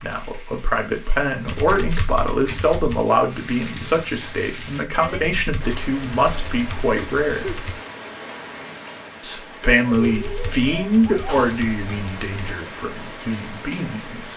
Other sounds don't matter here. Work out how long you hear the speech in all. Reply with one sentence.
You can hear the speech for 13 seconds altogether.